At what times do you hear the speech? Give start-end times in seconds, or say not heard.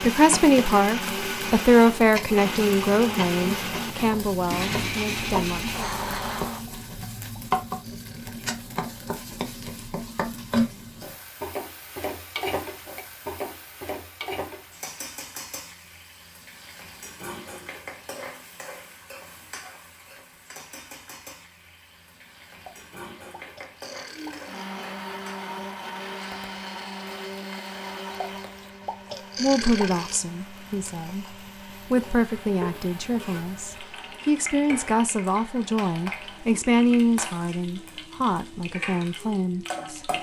0.0-6.0, 29.4-40.0.